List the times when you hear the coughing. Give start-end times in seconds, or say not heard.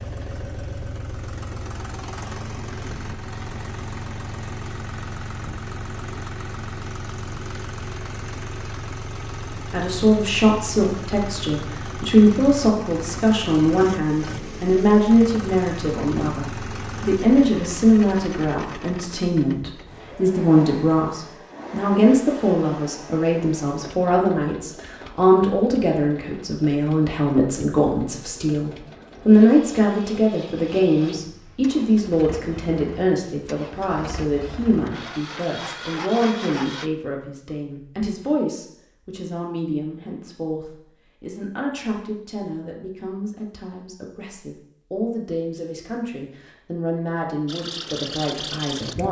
not heard.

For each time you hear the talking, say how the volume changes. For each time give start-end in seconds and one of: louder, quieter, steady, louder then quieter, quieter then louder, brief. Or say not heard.
9.7-49.0 quieter.